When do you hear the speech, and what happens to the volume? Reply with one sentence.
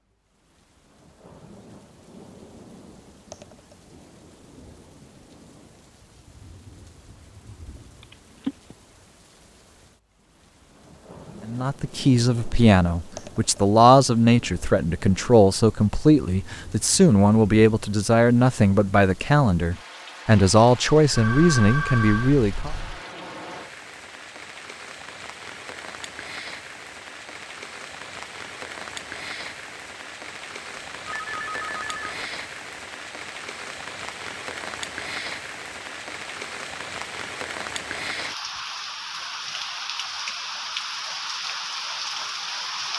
You can hear the speech from 11.4 to 22.7 s, at a steady volume.